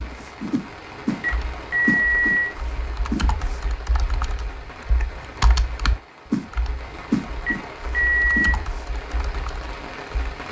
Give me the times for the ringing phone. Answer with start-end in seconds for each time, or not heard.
1.2-2.5, 7.5-8.6.